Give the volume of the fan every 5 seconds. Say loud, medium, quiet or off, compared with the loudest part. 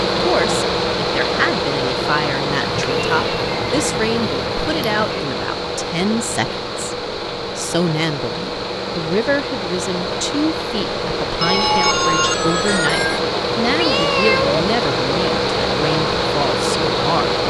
loud, medium, loud, loud.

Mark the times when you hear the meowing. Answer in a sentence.
You can hear the meowing from 2.6 to 5.3 s and from 13.7 to 14.6 s.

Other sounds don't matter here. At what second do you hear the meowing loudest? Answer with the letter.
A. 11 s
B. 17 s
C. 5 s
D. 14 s
D.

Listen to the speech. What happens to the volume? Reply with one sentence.
The volume of the speech stays about the same.